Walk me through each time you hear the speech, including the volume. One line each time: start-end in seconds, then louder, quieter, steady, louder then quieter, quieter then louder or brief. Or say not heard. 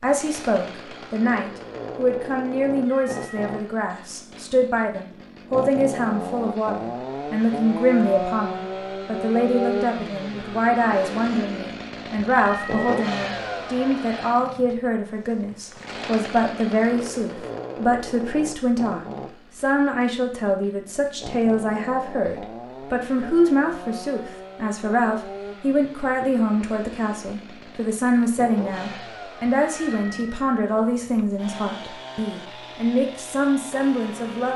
0.0-34.5 steady.